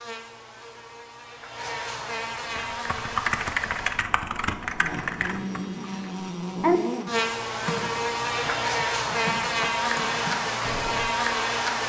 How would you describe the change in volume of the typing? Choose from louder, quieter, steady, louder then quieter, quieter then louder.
quieter.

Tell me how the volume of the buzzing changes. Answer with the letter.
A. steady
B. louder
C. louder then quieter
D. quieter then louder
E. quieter
B.